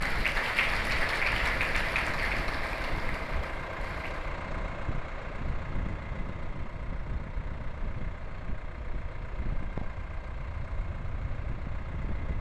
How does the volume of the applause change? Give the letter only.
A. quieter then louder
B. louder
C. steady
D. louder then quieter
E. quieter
E.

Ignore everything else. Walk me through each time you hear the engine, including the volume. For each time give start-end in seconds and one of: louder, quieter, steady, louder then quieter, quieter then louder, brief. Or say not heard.
0.0-12.3 quieter.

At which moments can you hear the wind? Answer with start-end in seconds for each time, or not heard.
0.0-12.3.